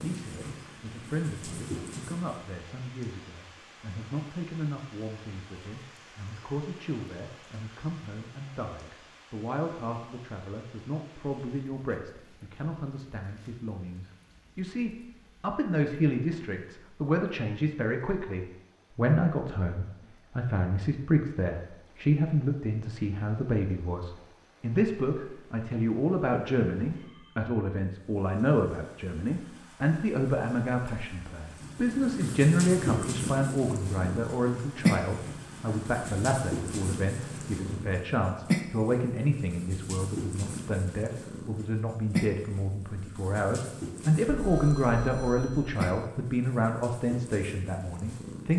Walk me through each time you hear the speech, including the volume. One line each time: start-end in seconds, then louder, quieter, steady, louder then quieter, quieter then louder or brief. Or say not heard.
0.0-48.5 louder.